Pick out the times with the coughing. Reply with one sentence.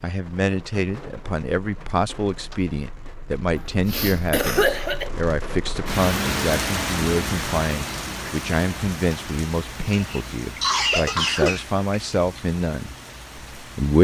You can hear the coughing from 3.5 to 5.1 s and from 9.8 to 12.4 s.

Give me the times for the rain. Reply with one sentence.
You can hear the rain from 0.0 to 14.0 s.